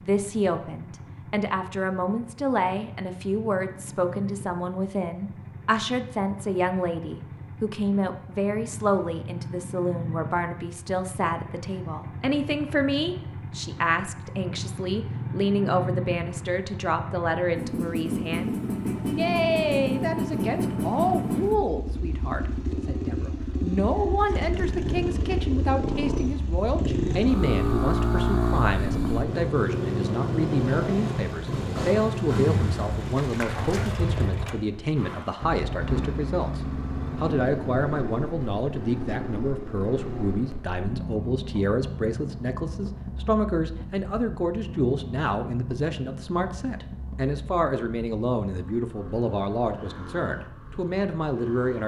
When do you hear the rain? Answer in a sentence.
You can't hear the rain here.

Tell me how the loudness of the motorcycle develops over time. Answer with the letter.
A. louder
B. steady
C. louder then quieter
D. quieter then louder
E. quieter
C.